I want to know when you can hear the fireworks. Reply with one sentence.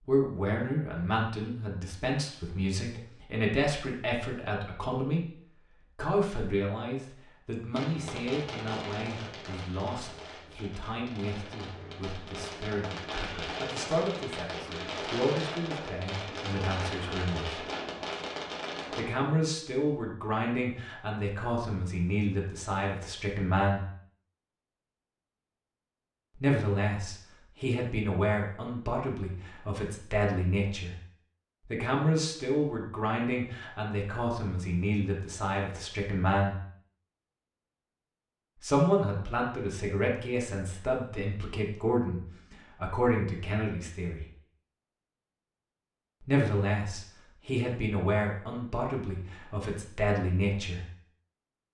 You can hear the fireworks from 7.7 to 19.1 s.